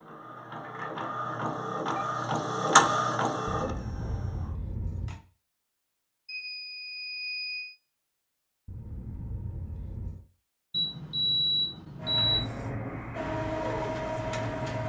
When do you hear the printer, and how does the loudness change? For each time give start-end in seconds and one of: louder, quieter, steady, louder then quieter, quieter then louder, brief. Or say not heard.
0.0-4.5 louder then quieter
11.9-14.8 brief.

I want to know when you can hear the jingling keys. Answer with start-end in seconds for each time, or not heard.
3.6-5.2, 8.7-10.2.